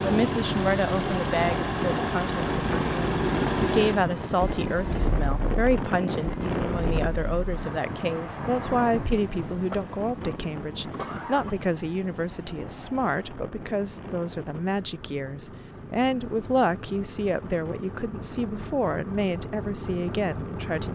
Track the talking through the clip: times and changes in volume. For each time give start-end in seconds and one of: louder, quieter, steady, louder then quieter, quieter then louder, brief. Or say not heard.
0.0-20.9 steady.